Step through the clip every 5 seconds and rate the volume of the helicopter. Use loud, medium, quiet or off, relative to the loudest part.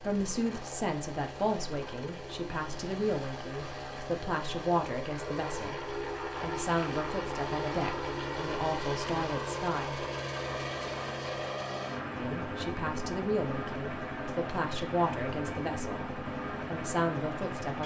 medium, loud, loud, loud.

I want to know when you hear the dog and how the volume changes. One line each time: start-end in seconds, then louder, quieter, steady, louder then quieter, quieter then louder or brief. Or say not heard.
not heard.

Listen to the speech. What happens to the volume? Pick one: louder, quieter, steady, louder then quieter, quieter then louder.
steady.